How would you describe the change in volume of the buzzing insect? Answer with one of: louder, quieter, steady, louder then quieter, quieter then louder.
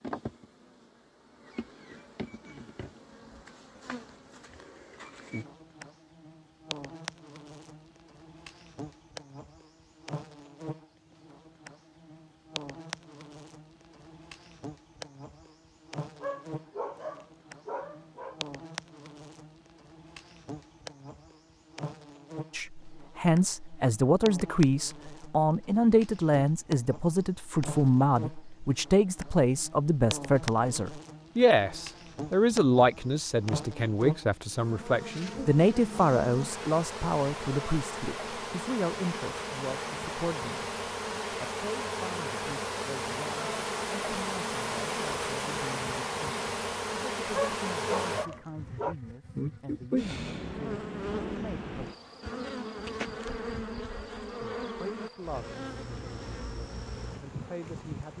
louder.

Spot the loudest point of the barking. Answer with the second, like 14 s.
48 s.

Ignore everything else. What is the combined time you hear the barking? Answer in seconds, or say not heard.
4 s.